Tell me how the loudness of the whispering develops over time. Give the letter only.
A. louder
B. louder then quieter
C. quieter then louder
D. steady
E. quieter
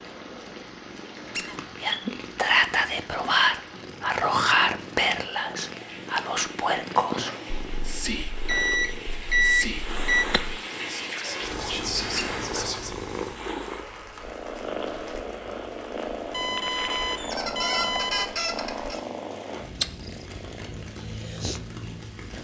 E.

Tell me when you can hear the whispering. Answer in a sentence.
The whispering can be heard from 1.8 to 12.9 s.